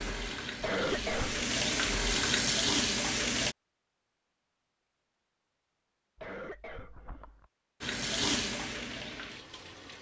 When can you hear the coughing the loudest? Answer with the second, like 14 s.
1 s.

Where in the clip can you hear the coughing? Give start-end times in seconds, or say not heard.
0.6-1.4, 6.2-7.5.